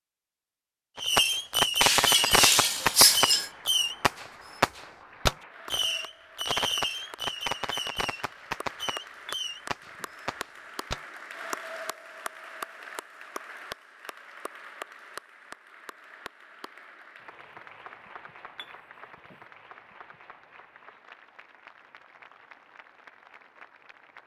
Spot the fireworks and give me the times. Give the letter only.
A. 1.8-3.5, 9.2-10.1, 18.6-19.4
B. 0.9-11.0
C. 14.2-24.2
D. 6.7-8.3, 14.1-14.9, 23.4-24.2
B.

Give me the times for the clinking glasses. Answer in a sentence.
You can hear the clinking glasses from 1.8 to 3.5 s, from 9.2 to 10.1 s and from 18.6 to 19.4 s.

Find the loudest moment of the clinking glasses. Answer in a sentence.
The loudest moment of the clinking glasses is at 3 seconds.